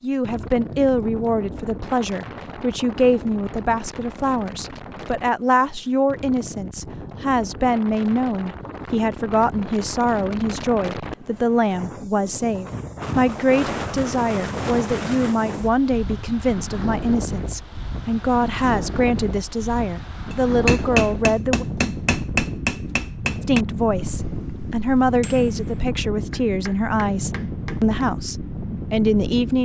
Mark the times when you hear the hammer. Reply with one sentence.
You can hear the hammer from 20.3 to 27.9 s.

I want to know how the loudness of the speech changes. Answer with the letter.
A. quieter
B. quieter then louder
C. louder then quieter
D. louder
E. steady
E.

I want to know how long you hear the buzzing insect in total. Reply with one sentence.
The buzzing insect can't be heard in this clip.